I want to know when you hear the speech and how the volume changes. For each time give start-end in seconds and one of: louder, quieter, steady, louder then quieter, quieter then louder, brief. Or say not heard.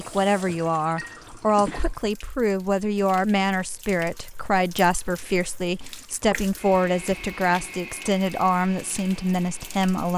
0.0-10.1 steady.